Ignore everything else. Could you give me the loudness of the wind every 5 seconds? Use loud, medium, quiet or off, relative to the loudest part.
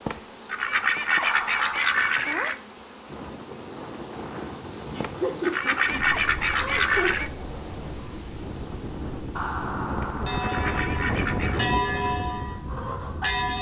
medium, medium, loud.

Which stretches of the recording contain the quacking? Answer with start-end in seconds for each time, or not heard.
0.1-2.6, 5.0-7.3, 9.9-11.6.